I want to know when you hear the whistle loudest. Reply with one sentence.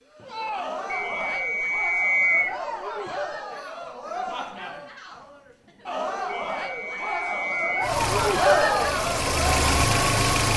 The loudest moment of the whistle is at 2 seconds.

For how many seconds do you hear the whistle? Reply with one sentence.
The whistle can be heard for 3 seconds in total.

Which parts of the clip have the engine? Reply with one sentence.
The engine can be heard from 7.8 to 10.5 s.